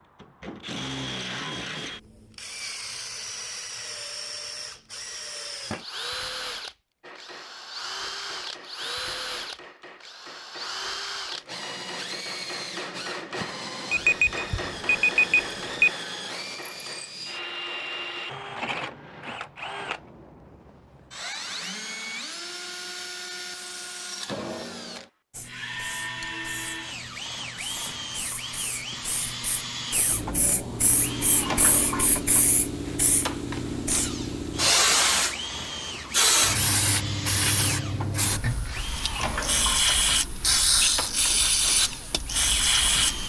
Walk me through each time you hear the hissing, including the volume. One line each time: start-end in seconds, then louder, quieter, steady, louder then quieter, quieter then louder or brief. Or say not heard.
25.3-43.2 louder.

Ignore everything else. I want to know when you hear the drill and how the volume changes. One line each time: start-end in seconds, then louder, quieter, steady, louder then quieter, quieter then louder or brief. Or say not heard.
0.0-43.2 steady.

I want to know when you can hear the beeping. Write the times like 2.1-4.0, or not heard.
13.9-15.9.